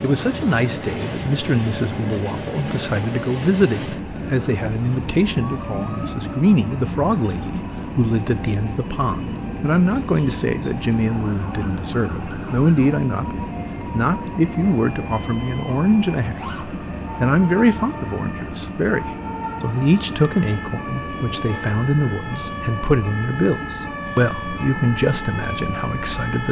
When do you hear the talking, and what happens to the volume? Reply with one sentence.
The talking can be heard from 0.0 to 26.4 s, at a steady volume.